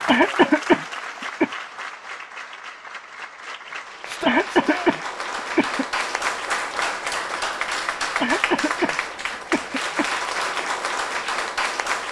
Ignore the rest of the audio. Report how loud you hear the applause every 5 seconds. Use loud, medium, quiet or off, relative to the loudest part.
medium, loud, loud.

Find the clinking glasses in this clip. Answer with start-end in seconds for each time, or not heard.
not heard.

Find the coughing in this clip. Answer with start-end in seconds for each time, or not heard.
0.1-1.5, 4.2-5.8, 8.2-10.1.